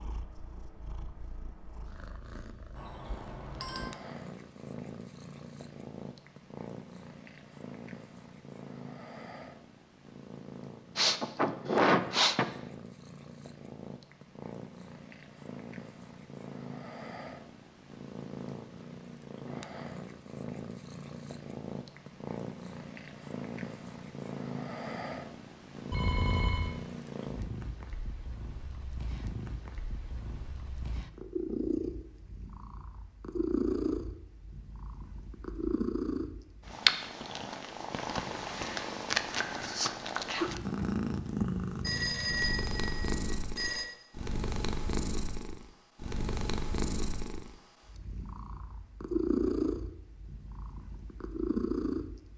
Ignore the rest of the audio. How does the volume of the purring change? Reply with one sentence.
The loudness of the purring goes up.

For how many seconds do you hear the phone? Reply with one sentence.
The phone can be heard for 4 seconds in total.